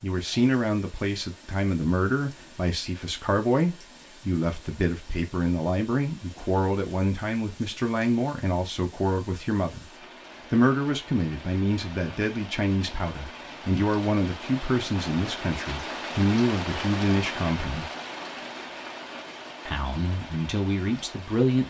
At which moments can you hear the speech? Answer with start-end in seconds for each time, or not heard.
0.0-9.9, 10.5-17.9, 19.6-21.6.